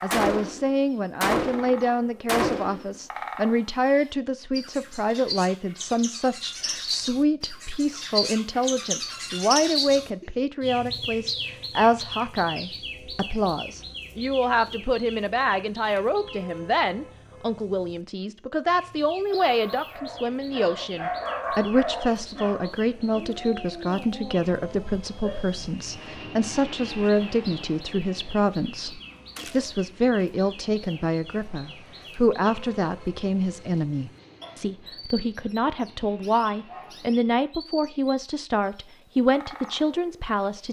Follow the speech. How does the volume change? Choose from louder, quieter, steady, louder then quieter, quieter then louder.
steady.